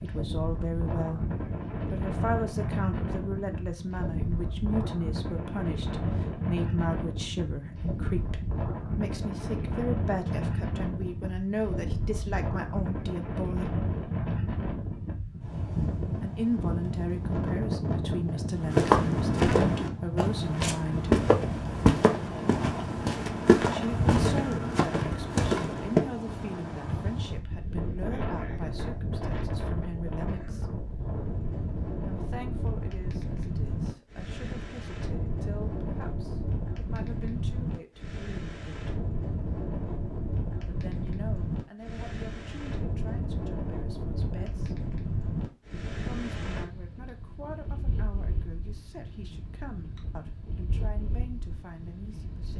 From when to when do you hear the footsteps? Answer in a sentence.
You can hear the footsteps from 18.6 to 26.1 s.